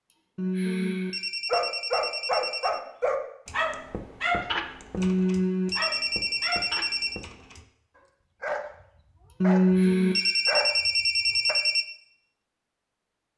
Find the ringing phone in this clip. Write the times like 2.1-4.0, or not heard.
0.3-2.8, 5.0-7.2, 9.4-11.8.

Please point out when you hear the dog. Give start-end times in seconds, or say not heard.
1.5-11.6.